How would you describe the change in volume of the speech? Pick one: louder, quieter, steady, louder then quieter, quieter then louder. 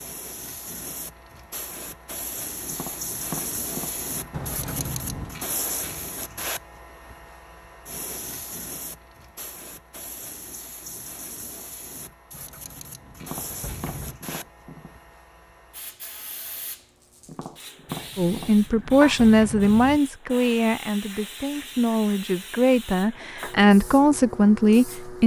quieter then louder.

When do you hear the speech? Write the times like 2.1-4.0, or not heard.
18.1-25.2.